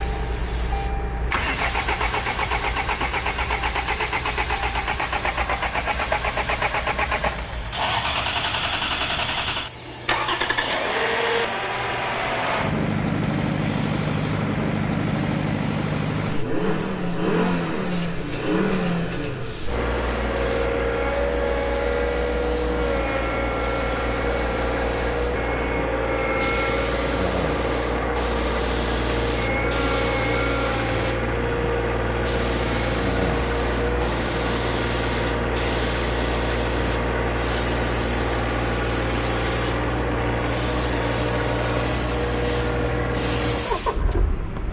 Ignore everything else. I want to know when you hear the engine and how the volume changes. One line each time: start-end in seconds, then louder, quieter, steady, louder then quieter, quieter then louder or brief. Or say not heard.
0.0-44.6 steady.